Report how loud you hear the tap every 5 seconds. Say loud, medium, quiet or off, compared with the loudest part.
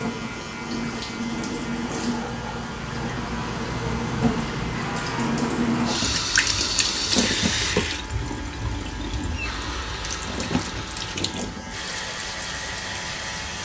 loud, loud, medium.